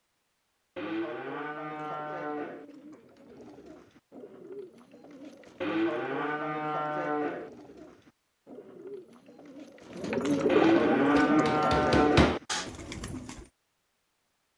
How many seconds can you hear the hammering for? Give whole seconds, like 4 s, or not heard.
2 s.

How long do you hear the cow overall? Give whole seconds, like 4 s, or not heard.
6 s.